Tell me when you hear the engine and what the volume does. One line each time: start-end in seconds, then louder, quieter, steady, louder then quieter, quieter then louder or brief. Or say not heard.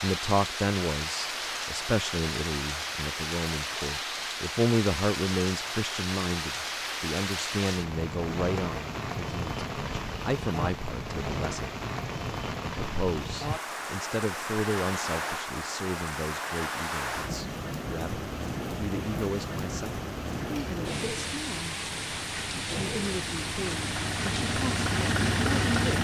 20.4-25.9 louder.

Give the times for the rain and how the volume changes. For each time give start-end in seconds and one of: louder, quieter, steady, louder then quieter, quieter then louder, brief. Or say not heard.
0.0-25.9 steady.